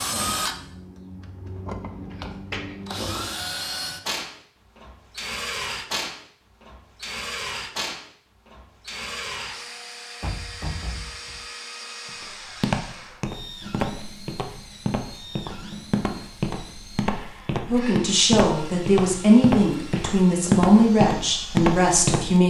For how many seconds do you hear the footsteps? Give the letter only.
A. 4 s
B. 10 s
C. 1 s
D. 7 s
B.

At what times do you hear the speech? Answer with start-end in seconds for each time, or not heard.
17.6-22.4.